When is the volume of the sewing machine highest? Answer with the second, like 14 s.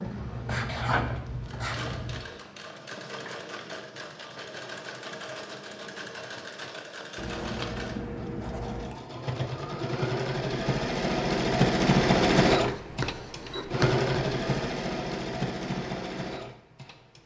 12 s.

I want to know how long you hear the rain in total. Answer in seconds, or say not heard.
not heard.